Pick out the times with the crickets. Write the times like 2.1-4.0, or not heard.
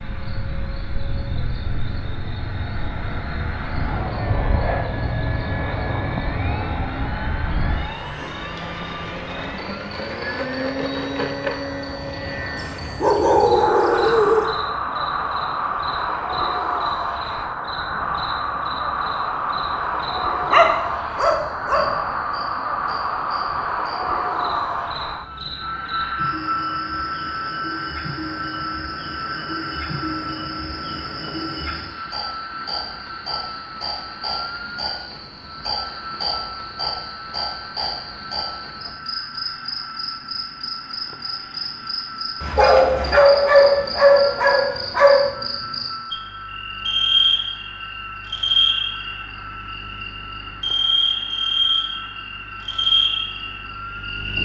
0.0-54.4.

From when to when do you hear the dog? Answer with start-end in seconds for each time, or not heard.
12.6-14.4, 20.4-22.1, 42.4-45.4.